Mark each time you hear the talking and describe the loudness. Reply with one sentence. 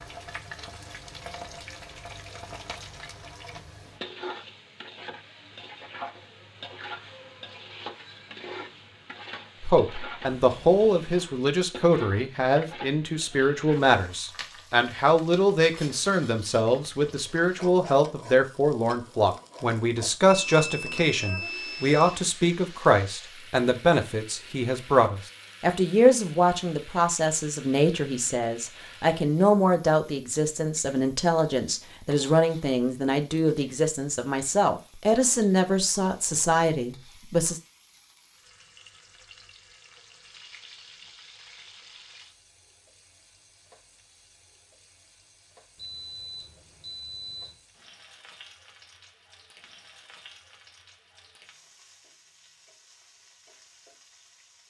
You can hear the talking from 9.6 to 37.6 s, at a steady volume.